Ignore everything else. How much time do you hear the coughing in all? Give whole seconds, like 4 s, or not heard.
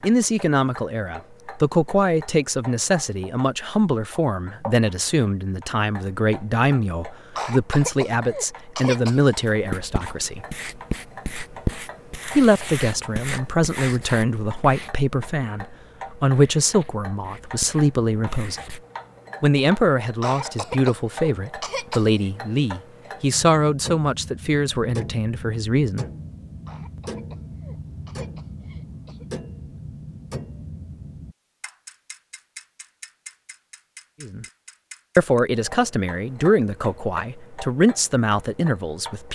7 s.